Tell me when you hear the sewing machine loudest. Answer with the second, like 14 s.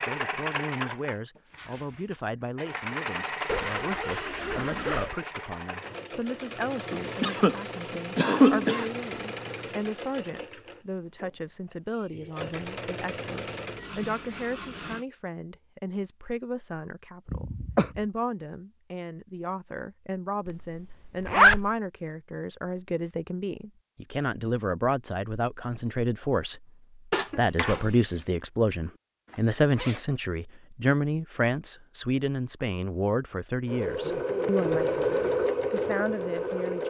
35 s.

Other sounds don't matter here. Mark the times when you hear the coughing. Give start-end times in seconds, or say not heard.
6.9-8.9, 17.2-18.0, 27.1-28.1.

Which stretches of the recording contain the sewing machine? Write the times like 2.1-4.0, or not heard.
0.0-15.1, 33.6-36.8.